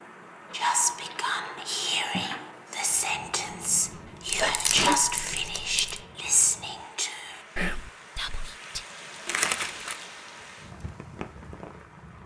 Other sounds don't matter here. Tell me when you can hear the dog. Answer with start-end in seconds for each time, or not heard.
not heard.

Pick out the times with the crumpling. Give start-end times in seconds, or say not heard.
0.5-2.5, 4.2-6.0, 9.2-9.9.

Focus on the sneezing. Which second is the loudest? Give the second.
5 s.